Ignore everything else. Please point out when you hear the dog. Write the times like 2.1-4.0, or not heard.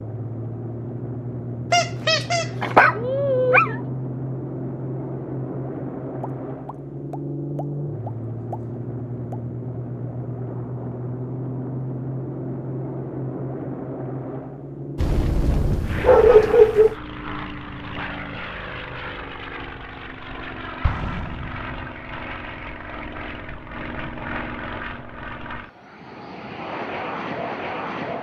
1.7-3.8, 14.9-16.9.